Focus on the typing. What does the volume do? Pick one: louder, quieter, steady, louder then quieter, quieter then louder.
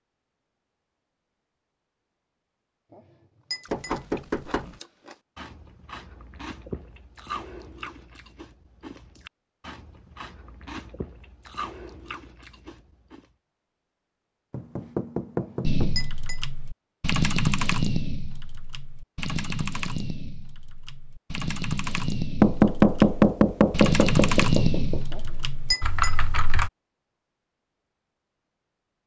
quieter then louder.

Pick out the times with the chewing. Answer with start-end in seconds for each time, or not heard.
3.6-13.2.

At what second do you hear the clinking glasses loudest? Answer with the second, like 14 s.
26 s.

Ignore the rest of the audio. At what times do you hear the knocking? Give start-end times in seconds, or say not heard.
3.7-4.8, 14.5-15.9, 22.4-25.1.